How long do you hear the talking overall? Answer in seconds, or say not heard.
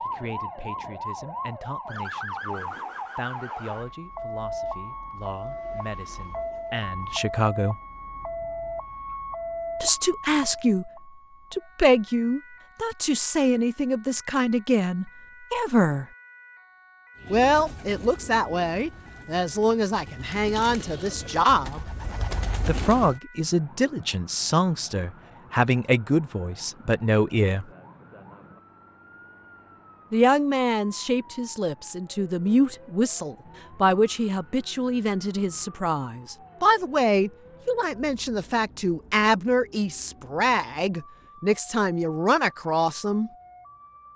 36 s.